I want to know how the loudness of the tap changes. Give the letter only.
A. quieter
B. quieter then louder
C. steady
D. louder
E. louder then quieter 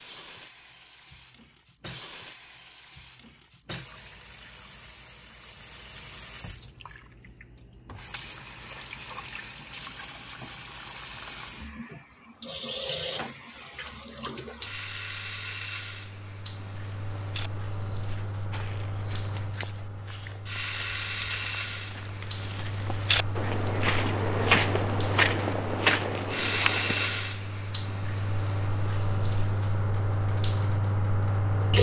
D.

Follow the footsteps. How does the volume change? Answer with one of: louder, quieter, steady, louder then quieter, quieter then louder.
louder.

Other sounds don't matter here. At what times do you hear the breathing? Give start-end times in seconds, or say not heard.
not heard.